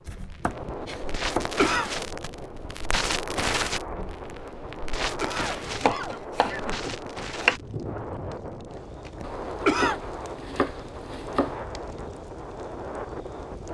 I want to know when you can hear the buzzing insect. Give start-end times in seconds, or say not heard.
not heard.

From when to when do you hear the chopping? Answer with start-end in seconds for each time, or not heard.
0.1-1.6, 5.7-7.5, 9.2-11.6.